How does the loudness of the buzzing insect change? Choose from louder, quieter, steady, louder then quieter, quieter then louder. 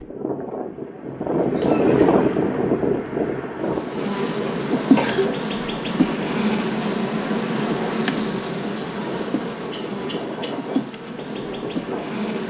quieter.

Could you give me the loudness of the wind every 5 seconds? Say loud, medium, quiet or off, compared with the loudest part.
loud, medium, medium.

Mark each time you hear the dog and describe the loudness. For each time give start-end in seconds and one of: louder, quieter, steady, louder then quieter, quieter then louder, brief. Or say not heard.
not heard.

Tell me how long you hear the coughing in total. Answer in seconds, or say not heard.
3 s.